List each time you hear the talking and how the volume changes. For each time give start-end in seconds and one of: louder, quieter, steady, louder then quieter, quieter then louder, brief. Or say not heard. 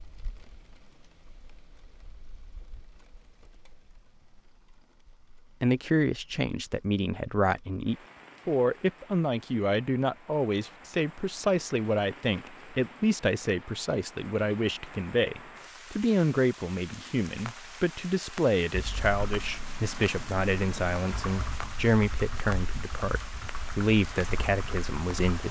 5.6-25.4 steady.